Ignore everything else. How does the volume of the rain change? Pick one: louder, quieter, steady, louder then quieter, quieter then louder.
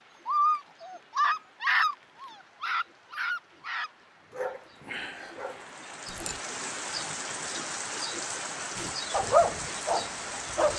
louder.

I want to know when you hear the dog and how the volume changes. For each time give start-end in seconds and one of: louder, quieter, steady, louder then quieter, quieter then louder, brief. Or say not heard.
0.2-6.4 quieter
8.8-10.7 brief.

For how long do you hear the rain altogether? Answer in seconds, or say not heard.
11 s.